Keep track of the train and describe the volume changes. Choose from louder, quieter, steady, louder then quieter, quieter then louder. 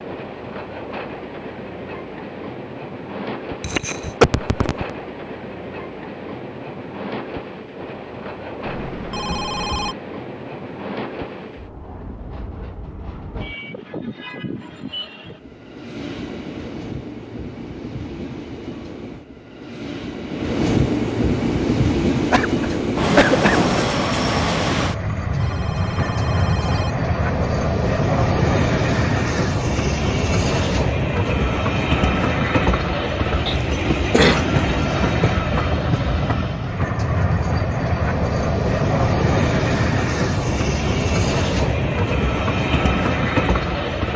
louder.